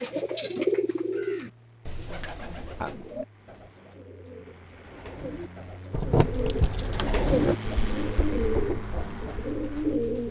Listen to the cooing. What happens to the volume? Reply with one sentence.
The volume of the cooing goes down, then up.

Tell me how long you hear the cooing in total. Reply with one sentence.
The cooing can be heard for 10 seconds in total.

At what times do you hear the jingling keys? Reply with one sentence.
You can hear the jingling keys from 5.9 to 7.5 s.